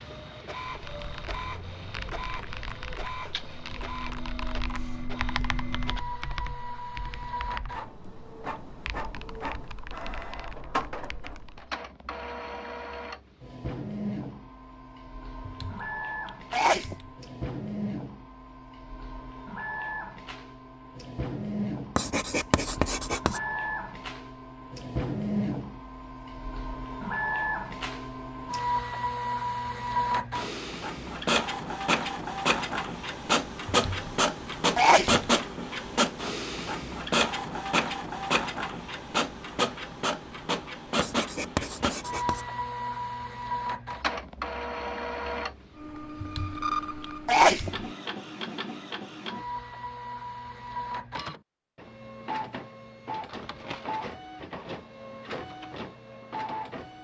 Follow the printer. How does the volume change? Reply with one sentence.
The volume of the printer goes up, then down.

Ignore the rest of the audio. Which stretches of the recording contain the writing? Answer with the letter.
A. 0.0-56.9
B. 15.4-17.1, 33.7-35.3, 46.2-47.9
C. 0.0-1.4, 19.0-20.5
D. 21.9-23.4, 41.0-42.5
D.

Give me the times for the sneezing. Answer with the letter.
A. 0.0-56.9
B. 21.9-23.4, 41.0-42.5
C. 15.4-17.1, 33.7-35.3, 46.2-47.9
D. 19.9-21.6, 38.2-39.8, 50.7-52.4
C.